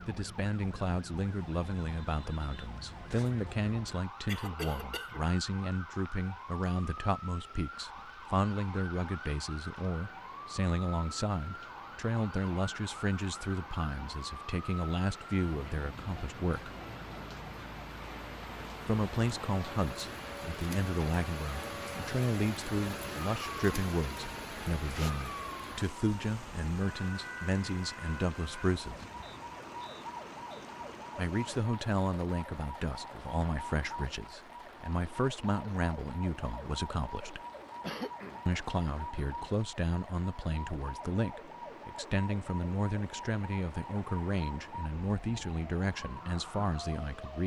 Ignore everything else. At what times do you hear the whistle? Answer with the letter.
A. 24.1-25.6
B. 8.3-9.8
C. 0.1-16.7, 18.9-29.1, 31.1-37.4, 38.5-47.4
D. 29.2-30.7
D.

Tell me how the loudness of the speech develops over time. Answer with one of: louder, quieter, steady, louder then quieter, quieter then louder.
steady.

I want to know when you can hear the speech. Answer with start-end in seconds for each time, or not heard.
0.1-16.7, 18.9-29.1, 31.1-37.4, 38.5-47.4.